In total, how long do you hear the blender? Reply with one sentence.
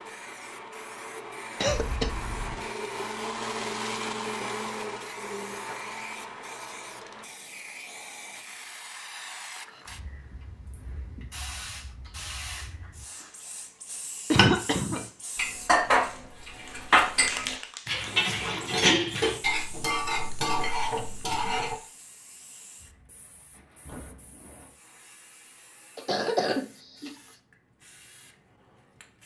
The blender can be heard for 7 seconds in total.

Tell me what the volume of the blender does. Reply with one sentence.
The volume of the blender goes up, then down.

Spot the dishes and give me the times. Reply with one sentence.
You can hear the dishes from 14.3 to 21.8 s.